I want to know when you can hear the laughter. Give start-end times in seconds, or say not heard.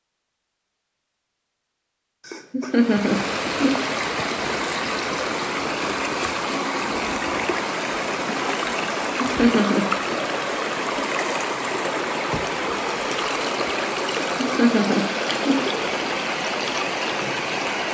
2.2-3.8, 9.0-10.2, 14.2-15.6.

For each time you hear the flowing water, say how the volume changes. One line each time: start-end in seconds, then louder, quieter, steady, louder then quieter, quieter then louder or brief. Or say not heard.
2.7-17.8 steady.